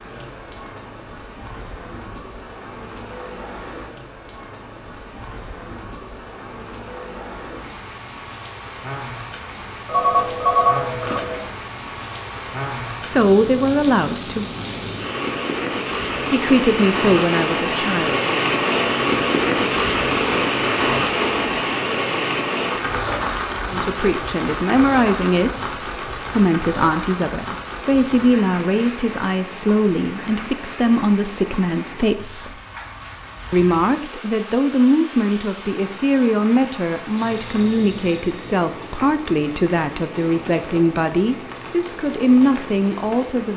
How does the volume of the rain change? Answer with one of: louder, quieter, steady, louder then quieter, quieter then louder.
louder then quieter.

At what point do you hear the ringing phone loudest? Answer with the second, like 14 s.
11 s.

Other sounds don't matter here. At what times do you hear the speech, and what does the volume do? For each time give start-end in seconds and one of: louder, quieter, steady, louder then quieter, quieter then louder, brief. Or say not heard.
13.0-14.4 brief
16.3-18.2 brief
23.7-32.5 steady
33.5-43.5 steady.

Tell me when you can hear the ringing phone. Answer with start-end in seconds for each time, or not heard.
9.8-11.4, 37.1-38.5.